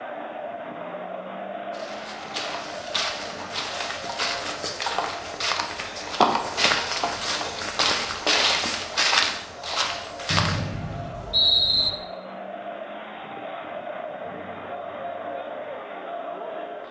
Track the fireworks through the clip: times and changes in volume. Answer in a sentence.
The fireworks can't be heard in this clip.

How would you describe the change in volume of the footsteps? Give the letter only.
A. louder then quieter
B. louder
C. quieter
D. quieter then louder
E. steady
B.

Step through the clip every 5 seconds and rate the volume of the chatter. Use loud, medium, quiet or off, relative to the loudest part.
loud, medium, loud, loud.